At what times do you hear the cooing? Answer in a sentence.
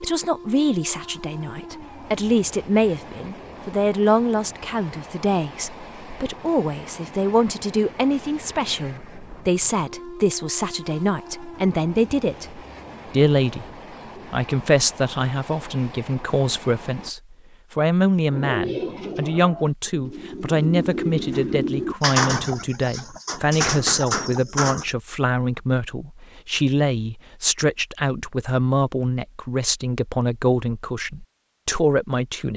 The cooing can be heard from 18.3 to 24.9 s.